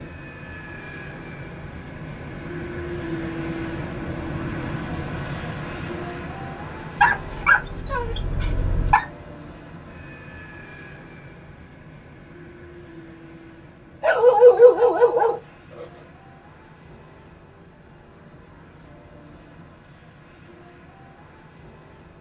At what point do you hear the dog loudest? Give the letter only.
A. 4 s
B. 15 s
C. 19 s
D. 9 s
B.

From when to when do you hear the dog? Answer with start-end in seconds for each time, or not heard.
7.0-9.1, 14.0-15.8.